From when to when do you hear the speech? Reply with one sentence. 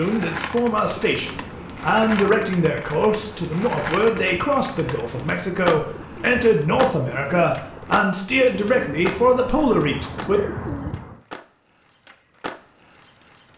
The speech can be heard from 0.0 to 10.4 s.